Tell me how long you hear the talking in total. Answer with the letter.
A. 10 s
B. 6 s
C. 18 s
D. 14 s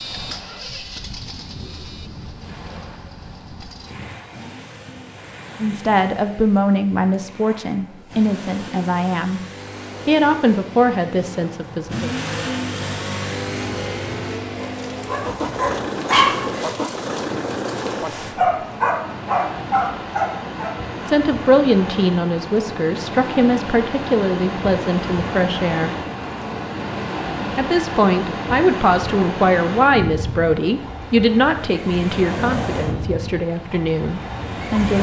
C.